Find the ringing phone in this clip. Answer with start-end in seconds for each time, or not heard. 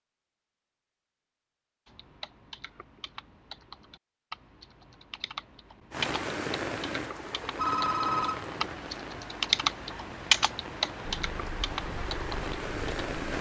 7.5-8.7.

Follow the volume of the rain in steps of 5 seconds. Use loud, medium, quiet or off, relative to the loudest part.
off, loud, loud.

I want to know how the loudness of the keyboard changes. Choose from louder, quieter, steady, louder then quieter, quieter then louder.
louder then quieter.